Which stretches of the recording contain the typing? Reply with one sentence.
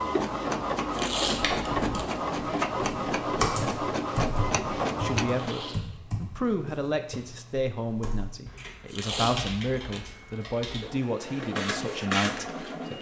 You can hear the typing from 1.4 to 10.8 s.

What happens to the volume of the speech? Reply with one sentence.
The volume of the speech stays about the same.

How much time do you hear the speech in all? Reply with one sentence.
You can hear the speech for 8 seconds altogether.